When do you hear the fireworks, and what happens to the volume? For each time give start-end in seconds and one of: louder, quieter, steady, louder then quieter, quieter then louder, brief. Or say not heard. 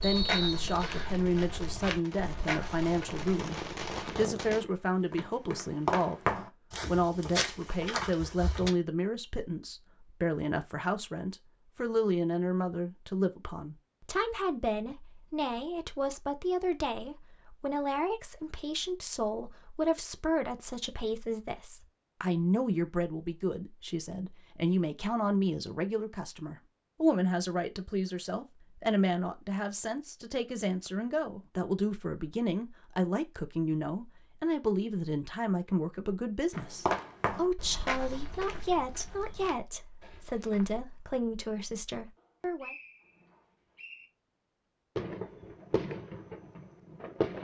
0.0-4.7 louder
45.0-47.3 brief.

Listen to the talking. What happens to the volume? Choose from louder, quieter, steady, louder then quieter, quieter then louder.
steady.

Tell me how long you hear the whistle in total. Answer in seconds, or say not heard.
3 s.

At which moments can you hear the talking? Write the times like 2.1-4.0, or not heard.
0.0-6.2, 6.8-42.8.